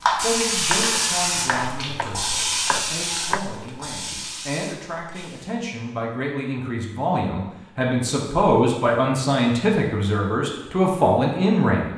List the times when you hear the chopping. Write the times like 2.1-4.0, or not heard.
0.6-3.4.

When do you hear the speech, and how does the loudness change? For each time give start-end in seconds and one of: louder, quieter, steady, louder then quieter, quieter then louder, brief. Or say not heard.
0.2-11.9 louder.